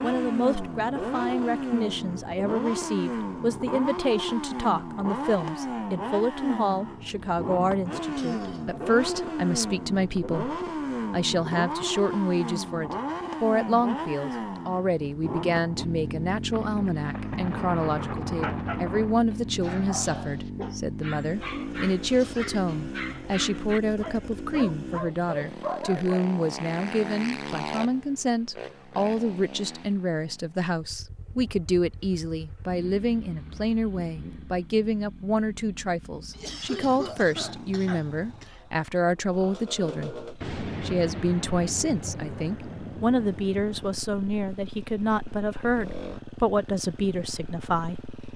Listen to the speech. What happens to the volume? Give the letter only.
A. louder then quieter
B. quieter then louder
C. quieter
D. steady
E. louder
D.